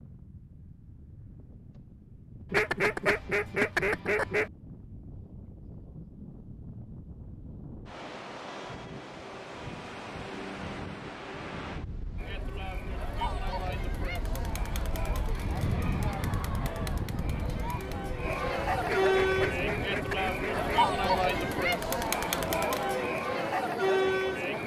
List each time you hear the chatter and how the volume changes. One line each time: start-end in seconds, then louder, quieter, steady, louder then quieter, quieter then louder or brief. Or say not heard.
12.2-24.6 louder.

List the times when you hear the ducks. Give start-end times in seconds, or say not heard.
2.5-4.5, 18.9-20.9.